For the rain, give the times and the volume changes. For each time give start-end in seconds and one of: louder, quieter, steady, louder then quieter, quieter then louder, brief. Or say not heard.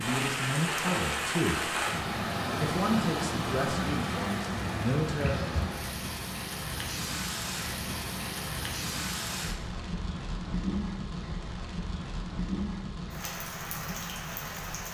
0.0-14.8 quieter.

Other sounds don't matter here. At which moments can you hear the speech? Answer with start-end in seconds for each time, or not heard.
0.0-1.7, 2.4-5.3.